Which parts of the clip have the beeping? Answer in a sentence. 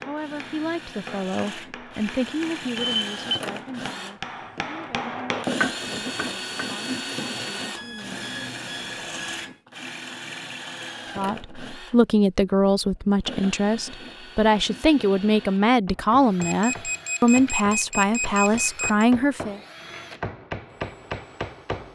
The beeping can be heard from 2.8 to 3.4 s, from 7.7 to 9.6 s and from 16.4 to 19.1 s.